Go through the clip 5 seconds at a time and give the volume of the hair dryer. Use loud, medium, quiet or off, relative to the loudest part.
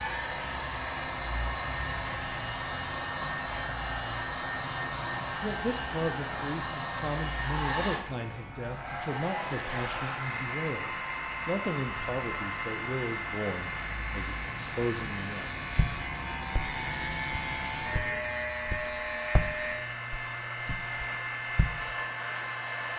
loud, loud, loud, medium, loud.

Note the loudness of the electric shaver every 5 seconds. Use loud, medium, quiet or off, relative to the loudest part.
medium, medium, medium, loud, quiet.